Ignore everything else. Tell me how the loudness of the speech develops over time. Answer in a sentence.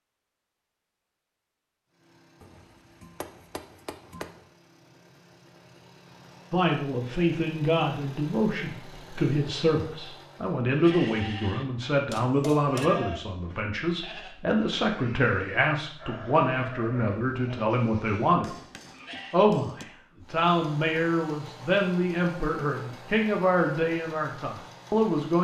The volume of the speech stays about the same.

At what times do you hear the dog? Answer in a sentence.
The dog can't be heard in this clip.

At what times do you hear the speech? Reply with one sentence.
You can hear the speech from 6.5 to 18.5 s and from 19.3 to 25.4 s.